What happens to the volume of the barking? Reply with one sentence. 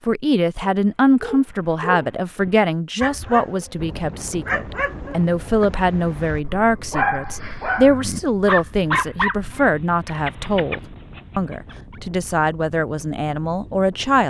The volume of the barking goes up, then down.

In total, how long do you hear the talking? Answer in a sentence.
You can hear the talking for 14 seconds altogether.